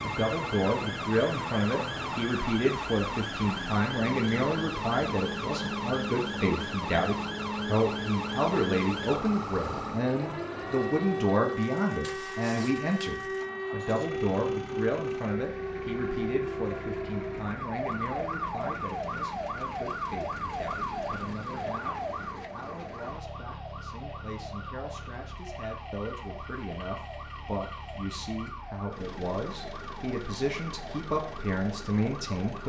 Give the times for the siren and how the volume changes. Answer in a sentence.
The siren can be heard from 0.0 to 32.6 s, getting quieter.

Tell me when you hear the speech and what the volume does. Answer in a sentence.
The speech can be heard from 0.0 to 32.6 s, getting quieter then louder.